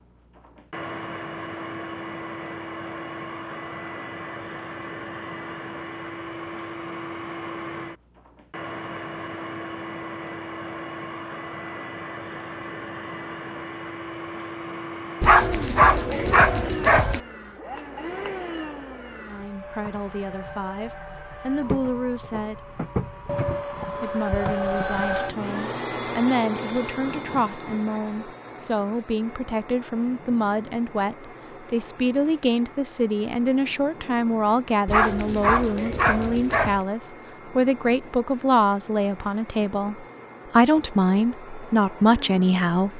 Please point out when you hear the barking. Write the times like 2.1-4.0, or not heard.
15.2-17.2, 34.9-36.8.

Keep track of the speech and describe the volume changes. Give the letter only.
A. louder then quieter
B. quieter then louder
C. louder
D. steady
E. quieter
C.